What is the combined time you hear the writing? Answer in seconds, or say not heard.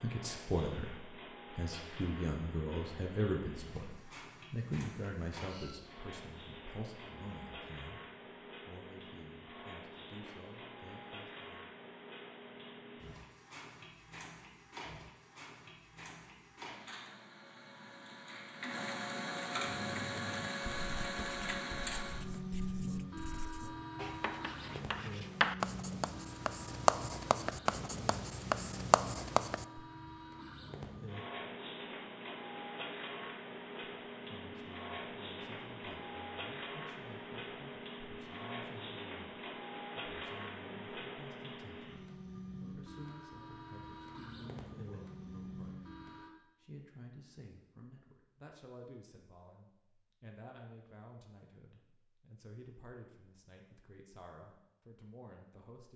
10 s.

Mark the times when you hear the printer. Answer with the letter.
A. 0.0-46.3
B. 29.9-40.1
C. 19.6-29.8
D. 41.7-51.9
A.